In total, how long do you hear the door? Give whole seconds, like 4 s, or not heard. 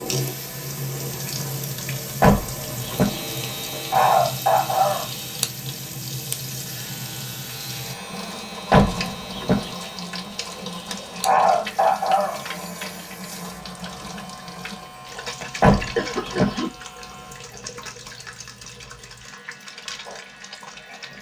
3 s.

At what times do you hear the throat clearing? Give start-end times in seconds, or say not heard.
3.9-5.1, 11.2-12.4, 15.4-16.7.